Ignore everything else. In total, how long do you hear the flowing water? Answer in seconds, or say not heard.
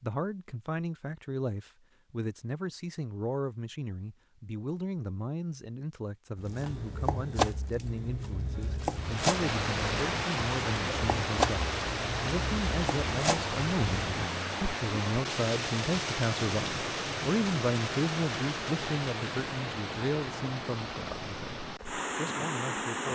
14 s.